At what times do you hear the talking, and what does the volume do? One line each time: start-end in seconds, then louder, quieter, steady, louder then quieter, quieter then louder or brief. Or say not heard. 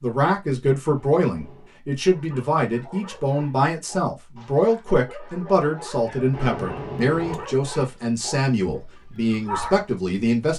0.0-10.5 steady.